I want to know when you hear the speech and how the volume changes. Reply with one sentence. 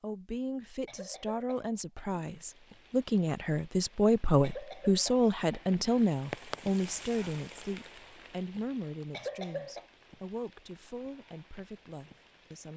The speech can be heard from 0.0 to 12.7 s, getting louder then quieter.